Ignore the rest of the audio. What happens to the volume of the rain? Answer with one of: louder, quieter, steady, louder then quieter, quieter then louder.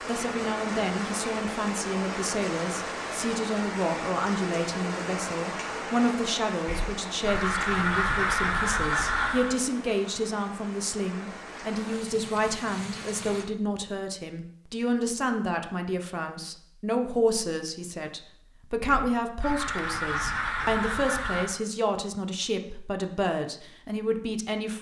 quieter.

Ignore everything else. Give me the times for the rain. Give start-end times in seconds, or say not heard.
0.0-13.4.